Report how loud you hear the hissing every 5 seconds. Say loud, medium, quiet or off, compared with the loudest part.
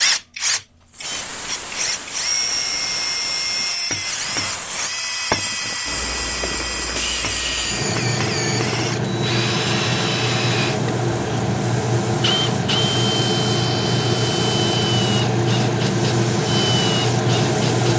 quiet, medium, loud, loud.